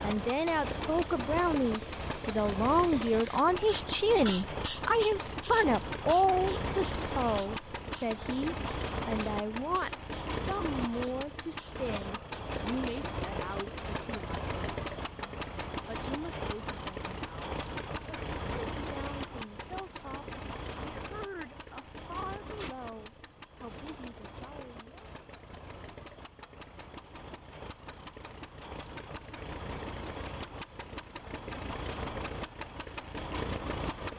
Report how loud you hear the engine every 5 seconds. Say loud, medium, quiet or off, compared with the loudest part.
loud, loud, loud, loud, medium, medium, loud.